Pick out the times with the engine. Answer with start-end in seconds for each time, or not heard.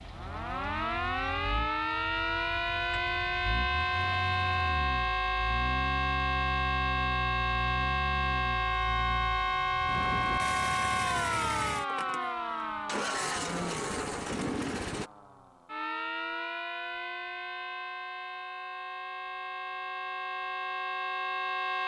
0.0-15.1.